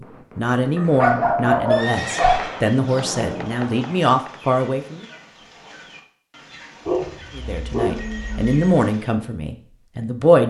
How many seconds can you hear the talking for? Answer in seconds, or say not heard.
8 s.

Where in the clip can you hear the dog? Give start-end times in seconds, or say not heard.
0.8-3.5, 6.8-8.8.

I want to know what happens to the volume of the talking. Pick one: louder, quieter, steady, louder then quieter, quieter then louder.
steady.